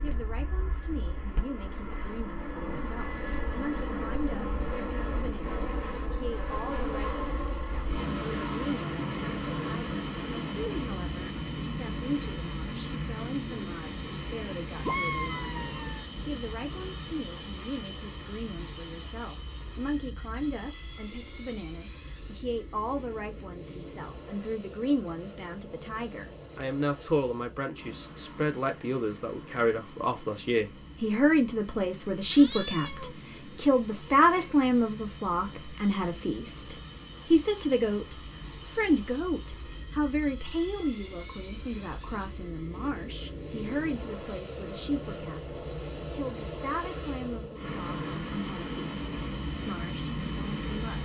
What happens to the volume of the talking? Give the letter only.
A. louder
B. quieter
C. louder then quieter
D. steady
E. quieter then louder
C.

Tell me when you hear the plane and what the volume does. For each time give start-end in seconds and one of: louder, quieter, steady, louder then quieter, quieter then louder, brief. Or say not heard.
0.0-51.0 quieter then louder.